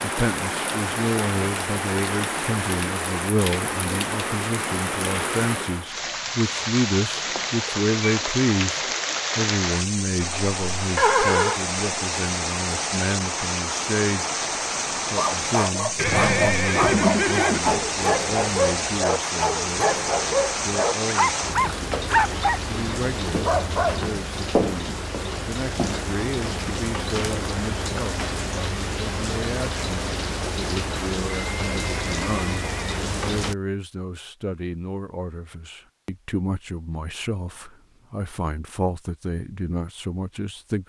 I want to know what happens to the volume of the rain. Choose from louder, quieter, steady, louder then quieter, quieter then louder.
steady.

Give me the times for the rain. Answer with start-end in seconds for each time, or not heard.
0.0-33.5.